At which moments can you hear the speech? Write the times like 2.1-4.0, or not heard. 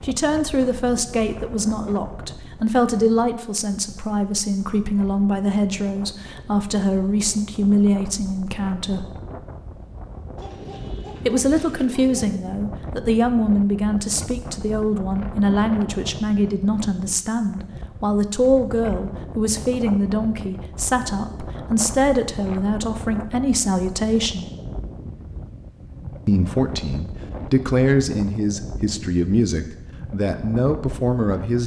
0.1-9.1, 11.2-24.4, 26.2-31.6.